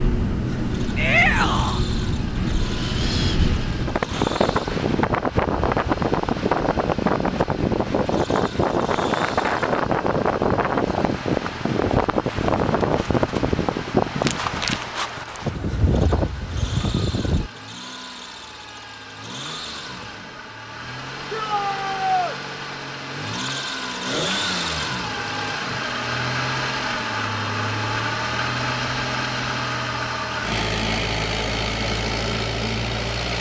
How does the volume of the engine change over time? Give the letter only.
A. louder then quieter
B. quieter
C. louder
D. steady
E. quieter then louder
C.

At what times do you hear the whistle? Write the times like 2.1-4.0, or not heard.
not heard.